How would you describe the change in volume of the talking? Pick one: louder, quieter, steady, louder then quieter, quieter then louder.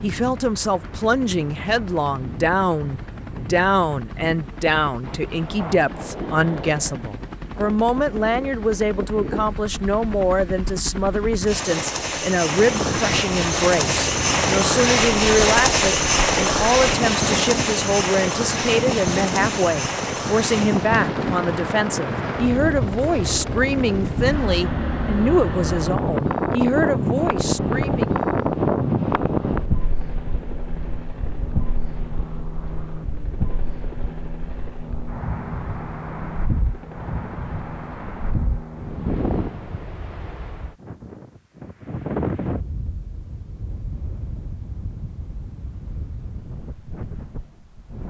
steady.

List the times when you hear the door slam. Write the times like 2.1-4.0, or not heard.
not heard.